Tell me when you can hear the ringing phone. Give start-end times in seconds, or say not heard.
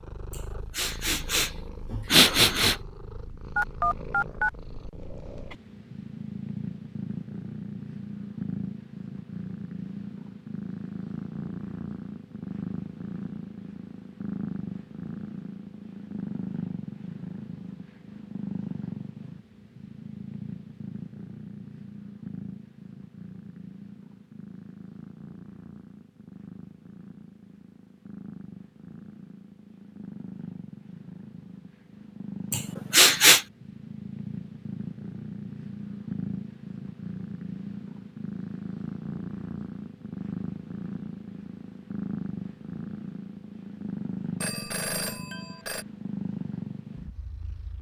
3.5-4.5, 44.4-45.9.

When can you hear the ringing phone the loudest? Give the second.
4 s.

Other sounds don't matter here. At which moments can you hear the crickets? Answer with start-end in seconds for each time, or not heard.
not heard.